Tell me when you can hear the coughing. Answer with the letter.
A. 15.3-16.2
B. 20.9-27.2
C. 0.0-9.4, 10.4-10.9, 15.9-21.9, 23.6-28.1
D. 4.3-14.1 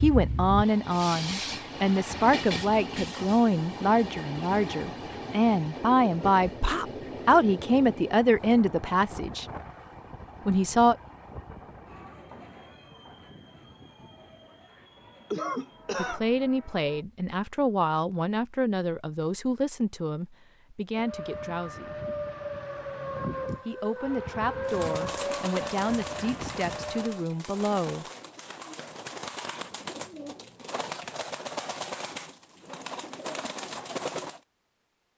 A.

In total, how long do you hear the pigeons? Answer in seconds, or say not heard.
10 s.